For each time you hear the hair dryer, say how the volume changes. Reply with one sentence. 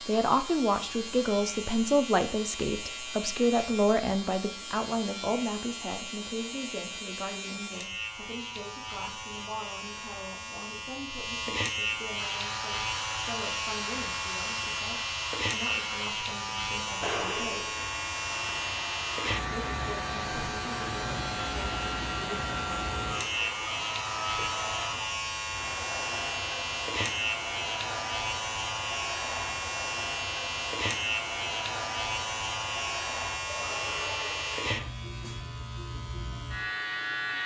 The hair dryer can be heard from 12.2 to 34.9 s, at a steady volume.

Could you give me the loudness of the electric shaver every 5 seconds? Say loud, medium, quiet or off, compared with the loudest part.
medium, medium, loud, loud, loud, loud, loud, loud.